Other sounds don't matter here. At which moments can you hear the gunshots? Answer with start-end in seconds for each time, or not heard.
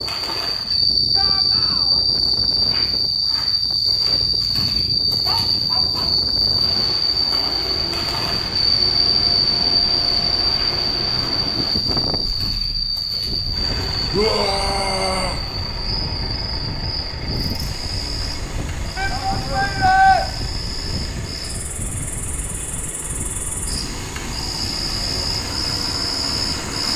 not heard.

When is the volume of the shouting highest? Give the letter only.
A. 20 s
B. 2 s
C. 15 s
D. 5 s
A.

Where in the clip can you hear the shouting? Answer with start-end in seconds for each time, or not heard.
1.1-2.0, 14.1-15.4, 18.9-20.2.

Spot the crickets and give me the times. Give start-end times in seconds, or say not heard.
0.0-26.9.